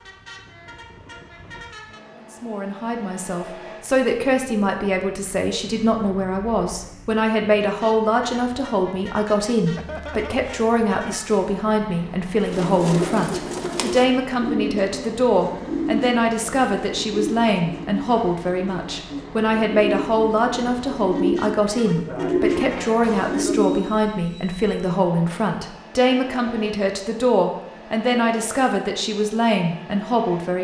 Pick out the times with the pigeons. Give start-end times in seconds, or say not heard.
12.4-23.9.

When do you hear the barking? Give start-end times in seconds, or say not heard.
not heard.